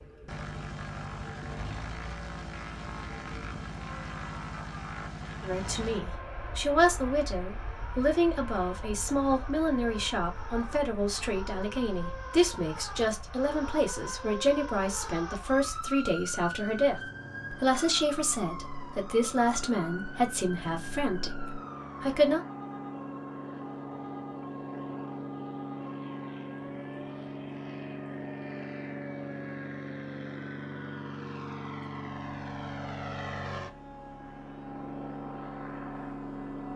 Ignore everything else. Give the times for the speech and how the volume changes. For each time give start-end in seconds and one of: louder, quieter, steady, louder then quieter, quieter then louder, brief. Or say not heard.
5.4-22.4 steady.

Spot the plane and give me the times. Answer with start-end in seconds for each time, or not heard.
0.0-36.7.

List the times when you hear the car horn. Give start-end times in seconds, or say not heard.
not heard.